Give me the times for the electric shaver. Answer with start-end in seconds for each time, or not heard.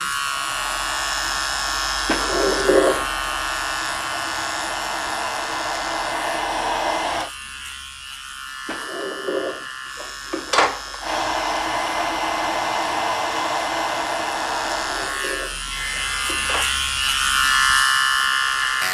0.0-18.8.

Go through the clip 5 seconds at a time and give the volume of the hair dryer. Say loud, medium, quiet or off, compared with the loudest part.
medium, loud, loud, quiet.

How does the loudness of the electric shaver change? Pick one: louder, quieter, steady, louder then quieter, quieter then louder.
quieter then louder.